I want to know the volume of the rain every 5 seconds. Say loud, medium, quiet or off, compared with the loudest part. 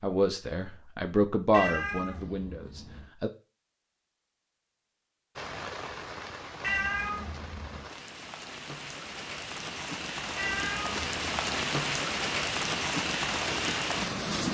off, medium, loud.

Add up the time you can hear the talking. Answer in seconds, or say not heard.
3 s.